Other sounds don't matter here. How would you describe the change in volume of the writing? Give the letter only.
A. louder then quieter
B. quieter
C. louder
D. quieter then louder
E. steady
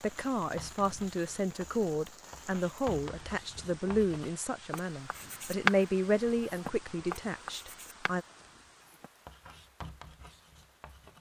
A.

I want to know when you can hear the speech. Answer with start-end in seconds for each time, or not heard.
0.0-8.2.